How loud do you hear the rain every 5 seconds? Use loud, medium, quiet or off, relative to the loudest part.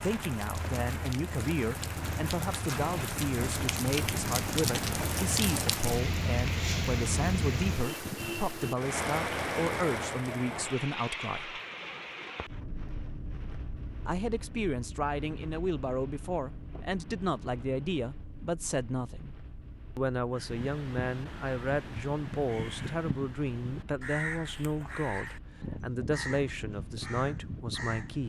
loud, loud, medium, quiet, quiet, quiet.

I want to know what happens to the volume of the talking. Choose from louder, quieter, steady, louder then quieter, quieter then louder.
steady.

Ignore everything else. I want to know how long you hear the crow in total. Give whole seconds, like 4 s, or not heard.
8 s.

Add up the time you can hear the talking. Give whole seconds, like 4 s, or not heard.
26 s.